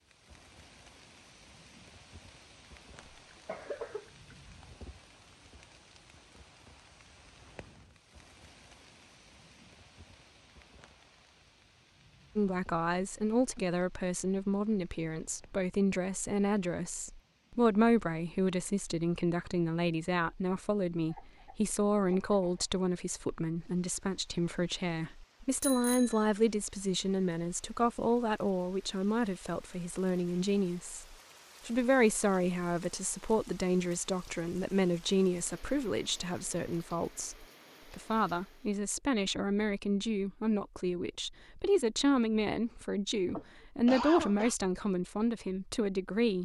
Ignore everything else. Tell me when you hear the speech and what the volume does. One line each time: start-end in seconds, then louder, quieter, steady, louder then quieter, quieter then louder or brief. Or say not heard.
12.3-46.3 steady.